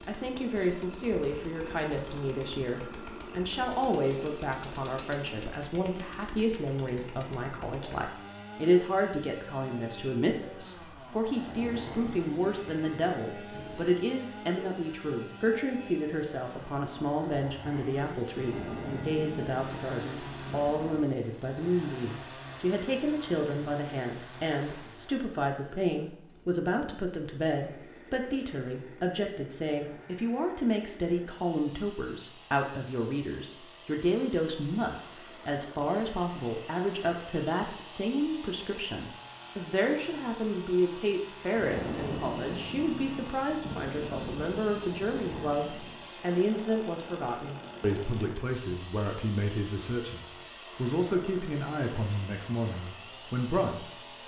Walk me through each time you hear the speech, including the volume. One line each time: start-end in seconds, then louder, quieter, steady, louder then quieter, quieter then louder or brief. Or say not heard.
0.1-54.0 steady.